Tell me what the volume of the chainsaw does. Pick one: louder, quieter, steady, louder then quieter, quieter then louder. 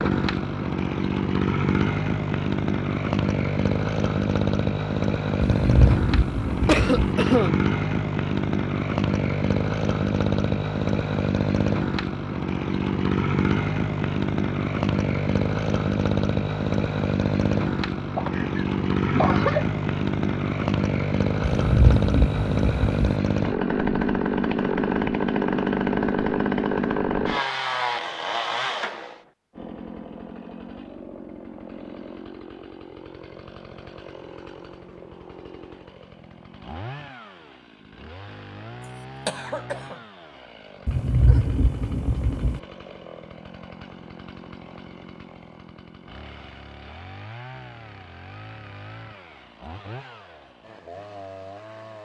quieter.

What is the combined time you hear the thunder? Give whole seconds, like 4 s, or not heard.
5 s.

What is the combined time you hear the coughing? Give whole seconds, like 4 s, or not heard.
3 s.